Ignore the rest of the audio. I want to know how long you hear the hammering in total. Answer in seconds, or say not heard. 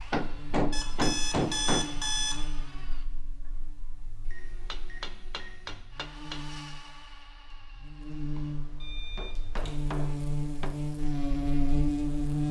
5 s.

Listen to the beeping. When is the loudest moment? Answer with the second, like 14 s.
2 s.